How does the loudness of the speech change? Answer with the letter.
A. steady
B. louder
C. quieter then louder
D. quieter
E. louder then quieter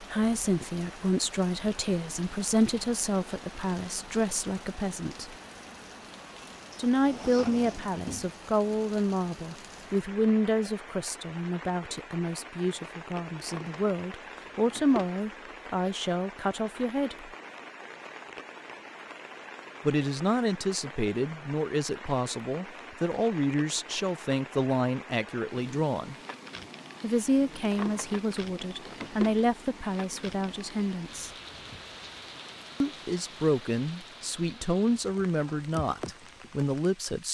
A.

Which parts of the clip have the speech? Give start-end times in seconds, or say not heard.
0.0-5.3, 6.8-17.3, 19.9-26.1, 27.0-31.3, 32.8-37.2.